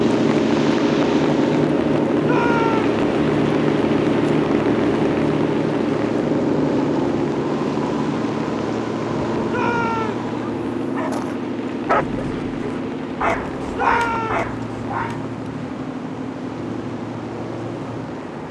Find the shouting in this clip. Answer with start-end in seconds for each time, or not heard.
2.2-2.9, 9.4-10.3, 13.7-14.5.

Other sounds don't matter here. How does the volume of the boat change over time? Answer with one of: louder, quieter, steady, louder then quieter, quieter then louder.
quieter.